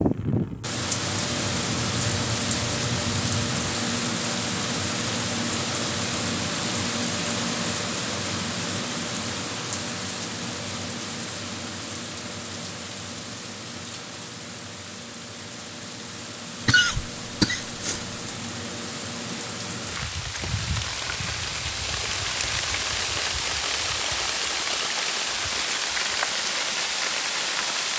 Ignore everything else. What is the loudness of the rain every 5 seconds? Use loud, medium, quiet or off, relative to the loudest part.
loud, loud, medium, medium, loud, loud.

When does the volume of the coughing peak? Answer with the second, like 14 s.
17 s.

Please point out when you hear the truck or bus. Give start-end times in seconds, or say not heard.
0.0-3.8.